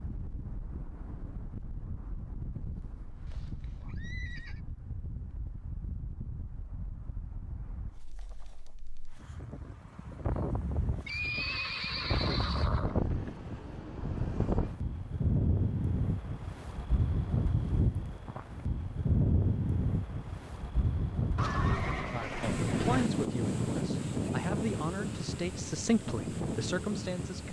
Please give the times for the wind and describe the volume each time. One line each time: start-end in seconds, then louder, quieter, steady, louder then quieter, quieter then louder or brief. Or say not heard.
0.0-27.4 louder.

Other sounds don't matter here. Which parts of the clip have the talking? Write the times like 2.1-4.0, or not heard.
22.1-27.4.